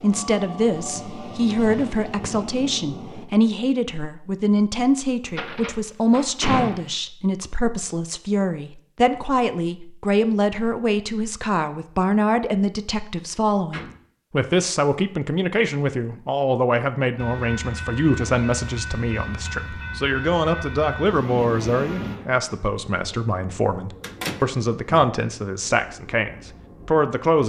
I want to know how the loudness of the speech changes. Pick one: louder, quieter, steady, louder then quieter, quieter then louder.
steady.